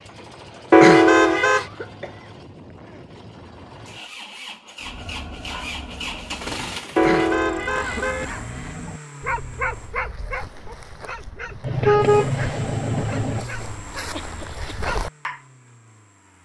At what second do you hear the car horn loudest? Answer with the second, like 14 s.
1 s.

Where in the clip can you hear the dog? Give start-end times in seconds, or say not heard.
4.8-15.3.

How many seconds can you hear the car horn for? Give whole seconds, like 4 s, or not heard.
4 s.